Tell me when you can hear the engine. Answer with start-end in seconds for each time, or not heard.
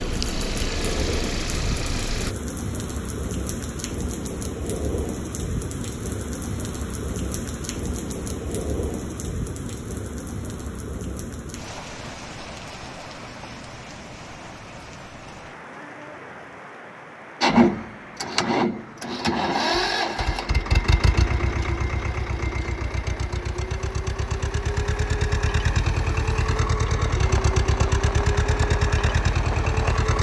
0.0-2.4, 17.4-30.1.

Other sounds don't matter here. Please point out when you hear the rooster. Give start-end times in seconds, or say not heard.
not heard.